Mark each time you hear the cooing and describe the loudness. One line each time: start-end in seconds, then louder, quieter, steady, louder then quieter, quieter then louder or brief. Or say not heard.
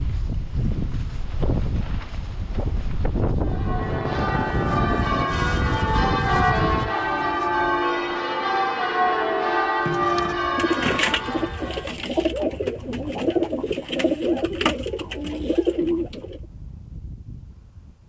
9.8-16.4 steady.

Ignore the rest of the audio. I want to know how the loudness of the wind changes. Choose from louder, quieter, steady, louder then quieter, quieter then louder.
quieter.